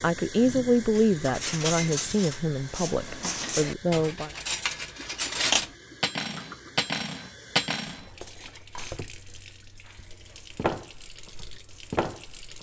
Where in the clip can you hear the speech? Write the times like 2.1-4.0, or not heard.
0.0-4.3.